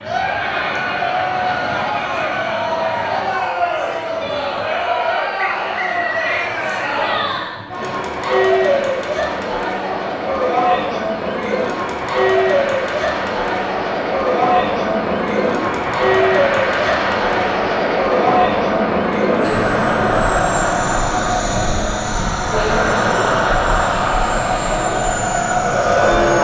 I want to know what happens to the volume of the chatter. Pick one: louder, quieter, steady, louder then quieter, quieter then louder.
steady.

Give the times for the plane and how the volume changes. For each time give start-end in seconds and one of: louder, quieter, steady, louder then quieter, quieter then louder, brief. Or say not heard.
0.0-26.3 louder.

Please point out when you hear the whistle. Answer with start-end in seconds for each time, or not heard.
5.3-6.5.